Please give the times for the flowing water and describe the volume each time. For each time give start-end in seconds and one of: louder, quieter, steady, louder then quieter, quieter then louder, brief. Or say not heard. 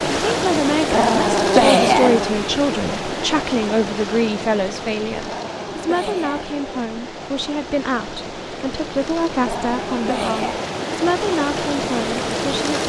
0.0-12.8 quieter then louder.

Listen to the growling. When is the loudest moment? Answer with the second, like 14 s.
2 s.